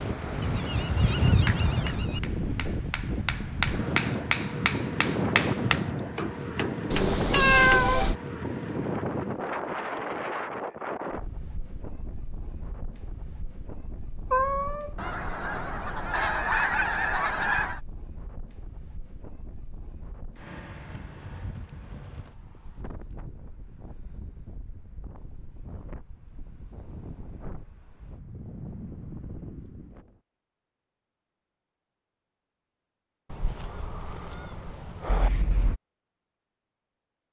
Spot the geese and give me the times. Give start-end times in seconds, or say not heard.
0.4-2.2, 14.9-17.8, 33.3-35.3.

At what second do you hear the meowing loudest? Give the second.
8 s.